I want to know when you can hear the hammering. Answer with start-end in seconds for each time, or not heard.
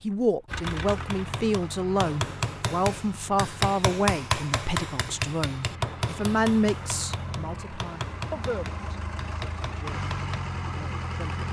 0.5-10.4.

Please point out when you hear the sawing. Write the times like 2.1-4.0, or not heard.
not heard.